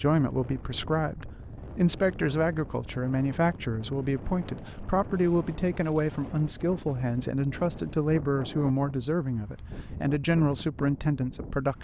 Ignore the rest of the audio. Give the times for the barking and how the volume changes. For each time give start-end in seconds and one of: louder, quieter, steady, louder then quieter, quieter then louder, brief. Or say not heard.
not heard.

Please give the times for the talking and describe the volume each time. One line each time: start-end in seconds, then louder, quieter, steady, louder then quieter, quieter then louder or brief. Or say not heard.
0.0-11.7 steady.